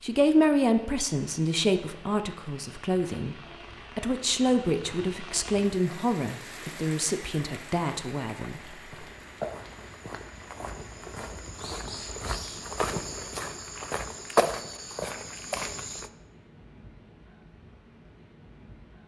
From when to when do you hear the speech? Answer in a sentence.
The speech can be heard from 0.0 to 8.8 s.